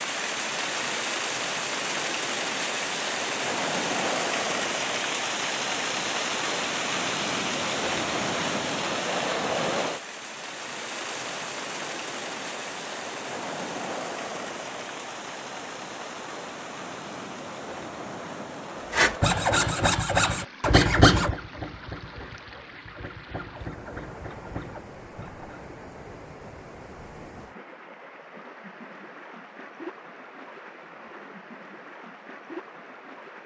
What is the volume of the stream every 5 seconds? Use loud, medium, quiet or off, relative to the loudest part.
loud, loud, medium, medium, quiet, quiet, quiet.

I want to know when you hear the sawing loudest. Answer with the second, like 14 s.
21 s.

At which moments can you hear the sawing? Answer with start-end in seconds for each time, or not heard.
18.9-25.6.